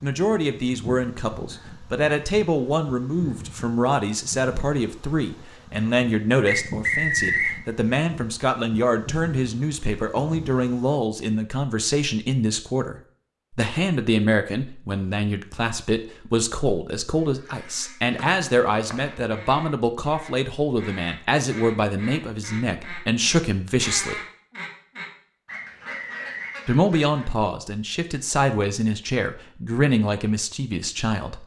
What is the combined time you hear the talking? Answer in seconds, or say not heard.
29 s.